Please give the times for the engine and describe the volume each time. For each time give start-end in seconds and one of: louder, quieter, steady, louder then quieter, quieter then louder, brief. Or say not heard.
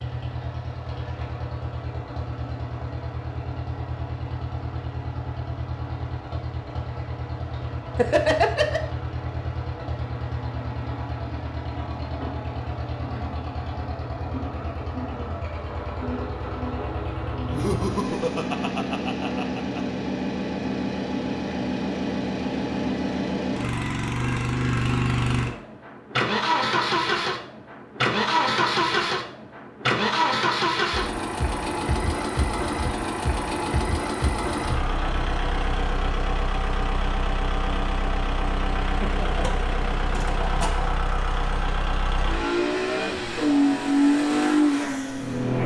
0.0-45.6 louder.